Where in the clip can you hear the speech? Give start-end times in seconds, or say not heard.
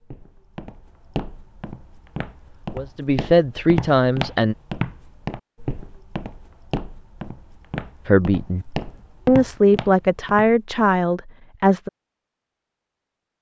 2.7-4.5, 8.1-8.7, 9.2-11.9.